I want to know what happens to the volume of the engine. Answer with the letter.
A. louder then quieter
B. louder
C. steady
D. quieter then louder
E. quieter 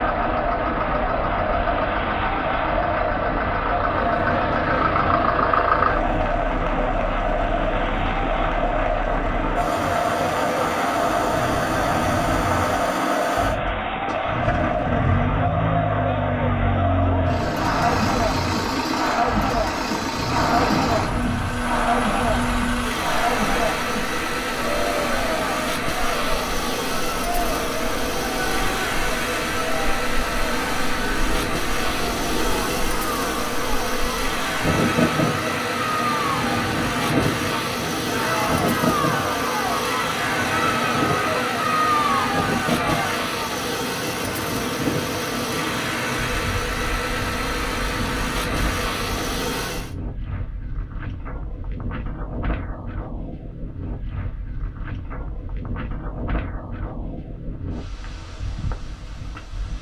C.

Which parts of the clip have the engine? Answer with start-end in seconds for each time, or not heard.
0.0-50.0.